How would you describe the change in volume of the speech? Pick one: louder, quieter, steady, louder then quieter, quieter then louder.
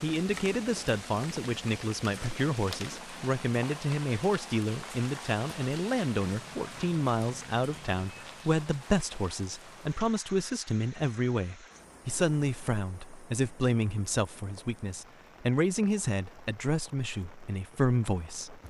steady.